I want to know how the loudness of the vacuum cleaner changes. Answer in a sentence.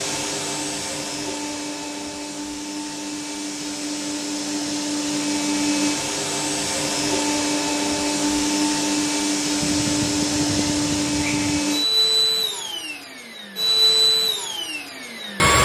The loudness of the vacuum cleaner goes up.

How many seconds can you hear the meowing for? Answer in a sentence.
You can hear the meowing for 2 seconds altogether.